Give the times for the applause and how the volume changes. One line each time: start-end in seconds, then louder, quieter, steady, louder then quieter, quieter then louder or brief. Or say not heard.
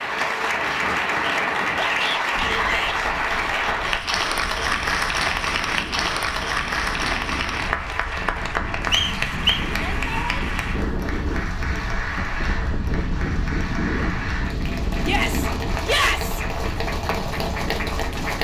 0.0-18.3 quieter.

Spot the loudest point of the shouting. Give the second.
16 s.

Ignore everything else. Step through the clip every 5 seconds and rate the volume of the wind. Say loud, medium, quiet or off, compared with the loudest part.
medium, medium, loud, loud.